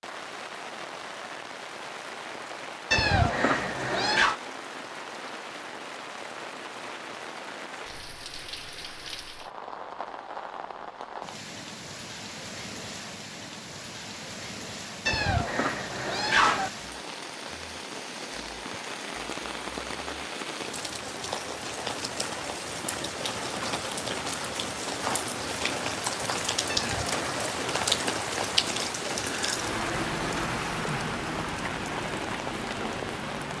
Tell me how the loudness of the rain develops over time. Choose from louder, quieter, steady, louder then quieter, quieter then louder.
louder.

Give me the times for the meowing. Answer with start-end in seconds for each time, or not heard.
2.9-4.4, 15.1-16.7, 26.6-27.4.